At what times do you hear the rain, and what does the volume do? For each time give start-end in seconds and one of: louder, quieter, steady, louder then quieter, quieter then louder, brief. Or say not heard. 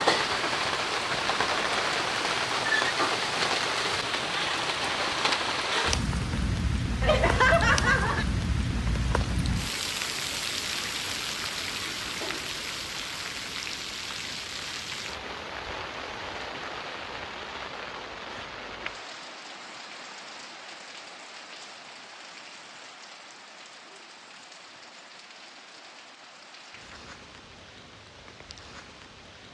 0.0-29.4 quieter.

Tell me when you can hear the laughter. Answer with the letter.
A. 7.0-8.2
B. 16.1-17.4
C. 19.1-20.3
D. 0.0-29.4
A.